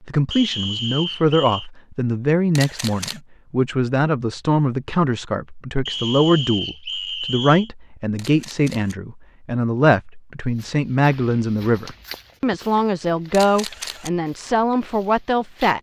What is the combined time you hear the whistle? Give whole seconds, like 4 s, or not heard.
4 s.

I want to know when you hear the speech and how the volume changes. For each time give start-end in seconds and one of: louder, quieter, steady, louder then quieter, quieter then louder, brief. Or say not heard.
0.1-15.7 steady.